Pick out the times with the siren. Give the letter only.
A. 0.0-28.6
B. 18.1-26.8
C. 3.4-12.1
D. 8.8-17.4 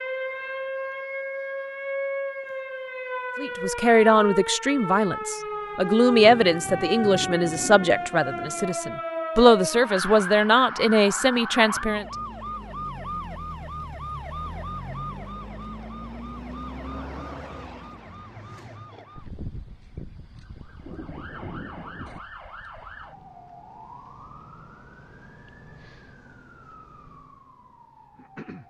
A.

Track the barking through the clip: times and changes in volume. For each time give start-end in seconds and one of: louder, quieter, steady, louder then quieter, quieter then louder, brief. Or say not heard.
not heard.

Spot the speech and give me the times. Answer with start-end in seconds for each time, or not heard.
3.4-12.1.